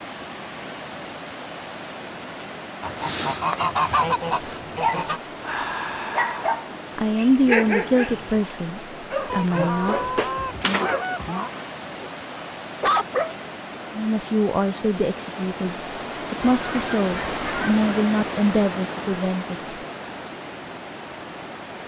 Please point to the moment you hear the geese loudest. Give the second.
4 s.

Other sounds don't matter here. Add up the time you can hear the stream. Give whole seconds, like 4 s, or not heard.
22 s.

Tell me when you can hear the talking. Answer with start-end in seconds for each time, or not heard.
7.0-10.1, 13.9-19.8.